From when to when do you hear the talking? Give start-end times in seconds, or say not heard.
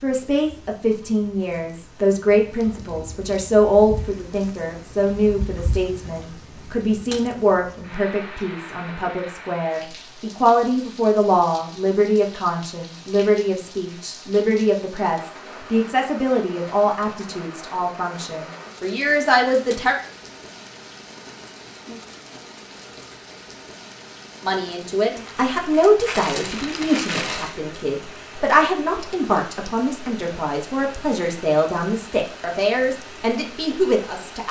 0.0-19.9, 24.4-34.4.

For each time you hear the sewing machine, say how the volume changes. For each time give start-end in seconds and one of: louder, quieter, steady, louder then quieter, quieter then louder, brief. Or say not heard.
not heard.